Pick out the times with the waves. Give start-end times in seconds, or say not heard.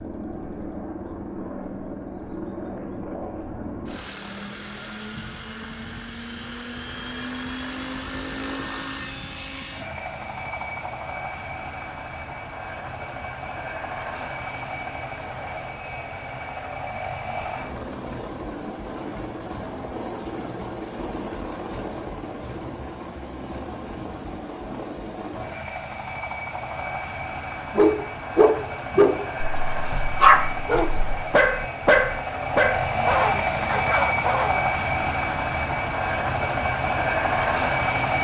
not heard.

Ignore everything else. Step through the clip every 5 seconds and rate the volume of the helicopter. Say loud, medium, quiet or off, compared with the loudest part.
medium, medium, medium, medium, medium, medium, loud, loud.